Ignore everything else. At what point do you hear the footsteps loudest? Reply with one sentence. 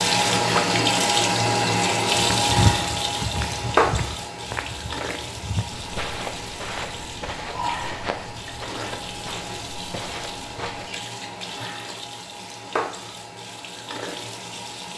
The volume of the footsteps peaks at 3 seconds.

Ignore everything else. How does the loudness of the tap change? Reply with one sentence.
The volume of the tap goes down.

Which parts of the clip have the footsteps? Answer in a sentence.
You can hear the footsteps from 2.4 to 10.9 s.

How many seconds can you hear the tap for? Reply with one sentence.
The tap can be heard for 15 seconds in total.